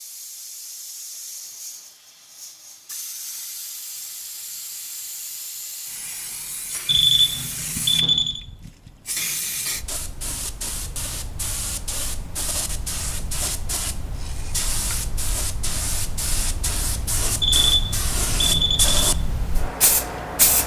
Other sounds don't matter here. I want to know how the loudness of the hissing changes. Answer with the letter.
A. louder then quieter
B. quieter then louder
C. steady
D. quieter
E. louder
E.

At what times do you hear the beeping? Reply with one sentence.
The beeping can be heard from 6.8 to 8.4 s and from 17.4 to 19.1 s.